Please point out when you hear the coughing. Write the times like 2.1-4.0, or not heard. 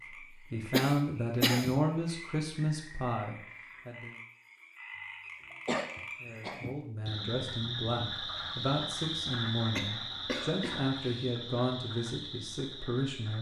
0.7-1.8, 5.5-6.7, 9.8-11.3.